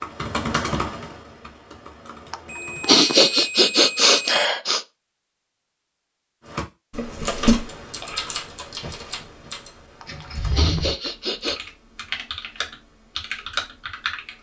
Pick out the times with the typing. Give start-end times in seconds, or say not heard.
0.0-3.0, 6.5-14.3.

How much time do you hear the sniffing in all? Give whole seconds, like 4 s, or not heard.
4 s.